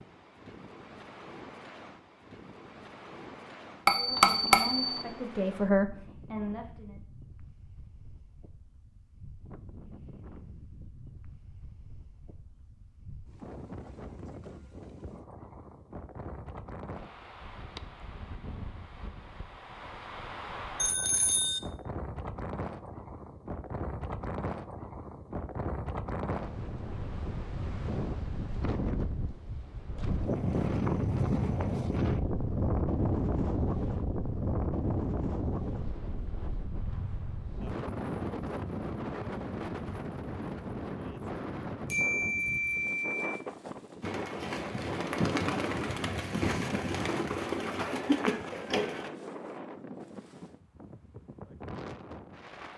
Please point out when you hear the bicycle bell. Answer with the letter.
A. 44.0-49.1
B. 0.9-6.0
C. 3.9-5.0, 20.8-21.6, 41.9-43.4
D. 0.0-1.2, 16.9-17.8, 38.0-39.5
C.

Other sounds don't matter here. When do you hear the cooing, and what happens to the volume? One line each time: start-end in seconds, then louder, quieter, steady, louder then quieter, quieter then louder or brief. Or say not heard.
44.0-49.1 steady.